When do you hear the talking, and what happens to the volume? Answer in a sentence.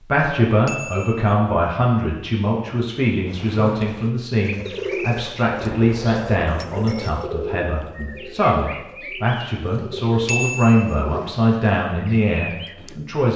The talking can be heard from 0.0 to 13.3 s, at a steady volume.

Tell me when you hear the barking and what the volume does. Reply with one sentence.
The barking can't be heard in this clip.